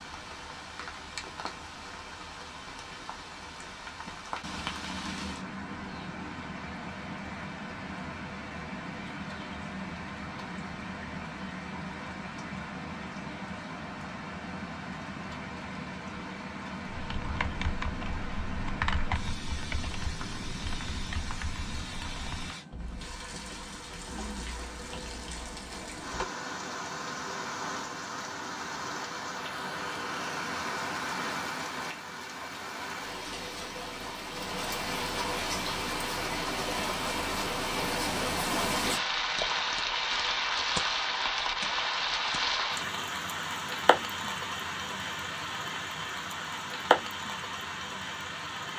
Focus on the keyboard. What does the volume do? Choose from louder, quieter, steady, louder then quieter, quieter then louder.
quieter.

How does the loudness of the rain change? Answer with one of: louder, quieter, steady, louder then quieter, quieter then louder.
louder.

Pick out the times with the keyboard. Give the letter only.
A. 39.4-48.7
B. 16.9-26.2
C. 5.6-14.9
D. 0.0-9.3
B.